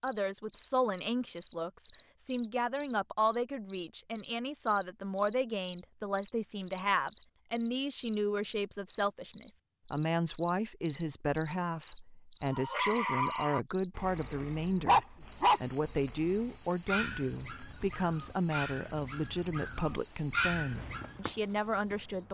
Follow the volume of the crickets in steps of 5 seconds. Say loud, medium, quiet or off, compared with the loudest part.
loud, loud, loud, medium, medium.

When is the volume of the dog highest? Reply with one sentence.
The loudest moment of the dog is at 15 seconds.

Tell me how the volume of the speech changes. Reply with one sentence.
The volume of the speech stays about the same.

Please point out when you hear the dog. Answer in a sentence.
The dog can be heard from 12.5 to 21.1 s.